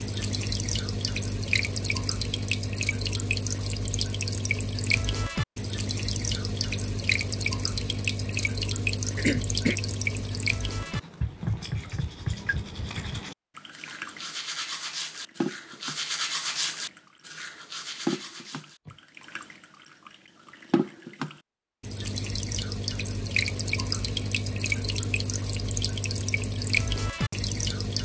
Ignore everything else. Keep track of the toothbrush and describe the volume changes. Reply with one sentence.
The volume of the toothbrush goes up, then down.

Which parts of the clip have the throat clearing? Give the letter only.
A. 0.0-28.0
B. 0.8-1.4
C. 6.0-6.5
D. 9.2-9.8
D.